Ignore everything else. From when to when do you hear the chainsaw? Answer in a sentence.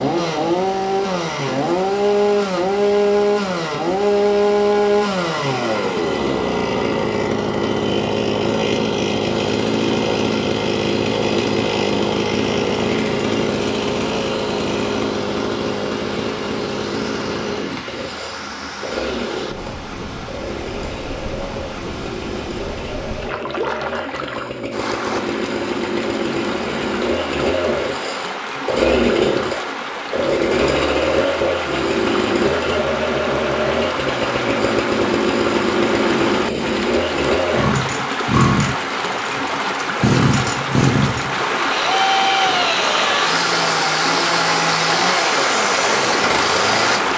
The chainsaw can be heard from 0.0 to 47.1 s.